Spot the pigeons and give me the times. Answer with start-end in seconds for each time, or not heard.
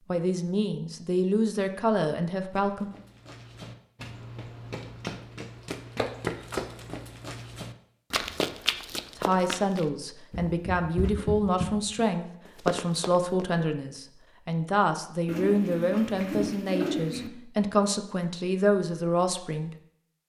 15.2-17.3.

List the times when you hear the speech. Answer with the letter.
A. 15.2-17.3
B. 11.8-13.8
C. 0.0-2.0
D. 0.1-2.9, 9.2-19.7
D.